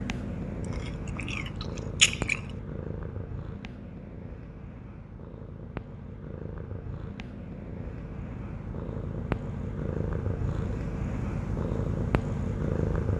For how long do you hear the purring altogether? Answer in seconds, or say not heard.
13 s.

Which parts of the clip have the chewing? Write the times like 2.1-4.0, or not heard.
0.7-2.5.